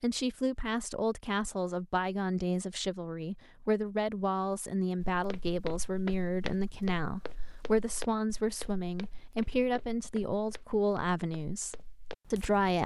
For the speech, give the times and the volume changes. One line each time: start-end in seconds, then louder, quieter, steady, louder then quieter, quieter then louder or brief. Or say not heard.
0.0-12.8 steady.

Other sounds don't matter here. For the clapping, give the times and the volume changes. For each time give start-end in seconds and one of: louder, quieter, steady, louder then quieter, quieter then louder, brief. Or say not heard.
not heard.